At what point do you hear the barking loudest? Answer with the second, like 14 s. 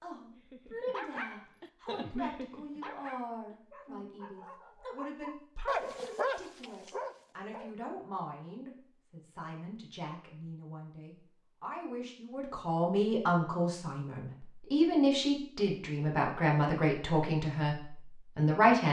6 s.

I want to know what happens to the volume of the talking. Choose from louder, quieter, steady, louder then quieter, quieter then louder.
louder.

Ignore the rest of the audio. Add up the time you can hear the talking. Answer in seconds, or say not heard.
19 s.